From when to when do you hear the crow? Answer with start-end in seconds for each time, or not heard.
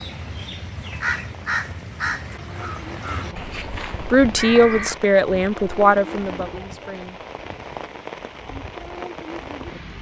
0.0-5.0.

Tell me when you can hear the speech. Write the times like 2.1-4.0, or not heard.
4.0-7.2.